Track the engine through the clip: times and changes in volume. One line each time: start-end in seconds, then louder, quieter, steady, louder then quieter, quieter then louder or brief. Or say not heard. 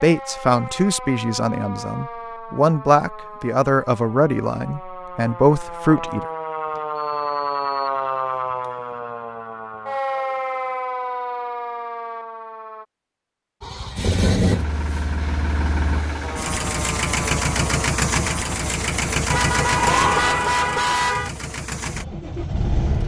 13.6-23.0 quieter.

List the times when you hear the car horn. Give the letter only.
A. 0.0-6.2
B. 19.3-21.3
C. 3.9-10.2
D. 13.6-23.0
B.